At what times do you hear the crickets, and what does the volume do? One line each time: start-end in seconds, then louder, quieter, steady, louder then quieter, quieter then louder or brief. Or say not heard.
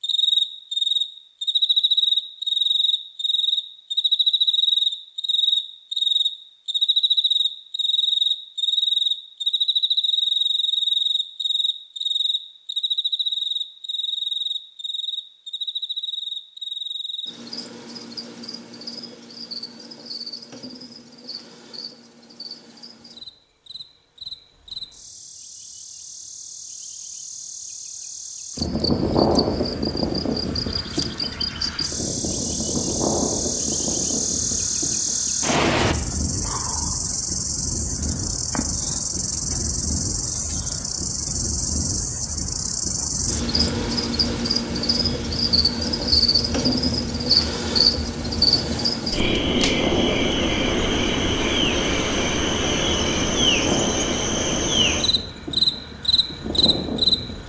0.0-57.4 quieter then louder.